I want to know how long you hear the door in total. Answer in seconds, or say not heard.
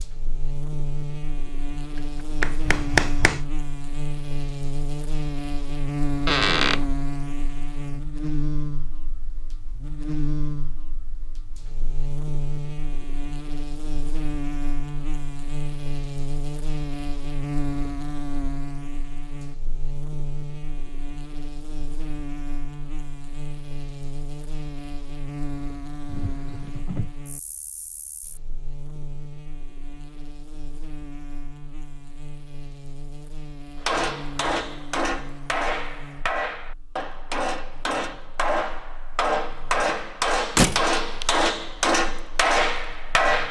2 s.